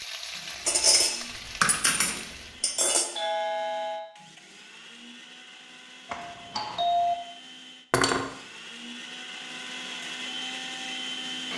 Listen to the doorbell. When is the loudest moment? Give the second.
7 s.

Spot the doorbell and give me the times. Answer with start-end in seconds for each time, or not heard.
3.1-4.1, 6.0-7.2.